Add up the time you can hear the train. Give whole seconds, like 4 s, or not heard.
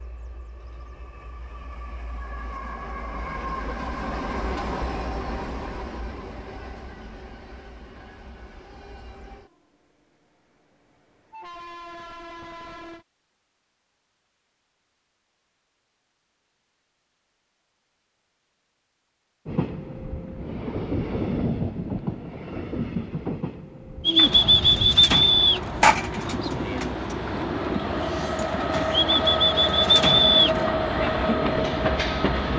26 s.